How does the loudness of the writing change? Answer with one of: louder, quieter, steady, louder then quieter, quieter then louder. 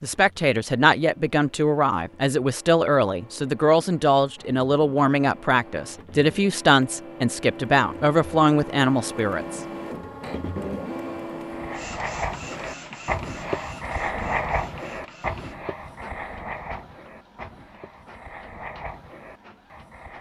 quieter.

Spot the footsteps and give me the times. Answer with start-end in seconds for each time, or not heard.
not heard.